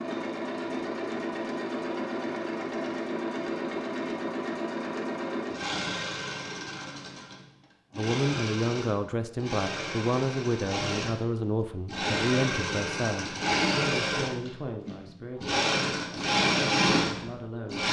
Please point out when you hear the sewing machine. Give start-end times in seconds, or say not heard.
0.0-17.8.